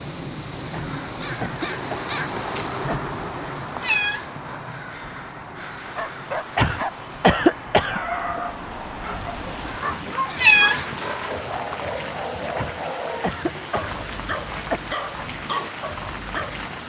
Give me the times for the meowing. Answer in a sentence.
You can hear the meowing from 3.8 to 5.2 s and from 10.3 to 11.8 s.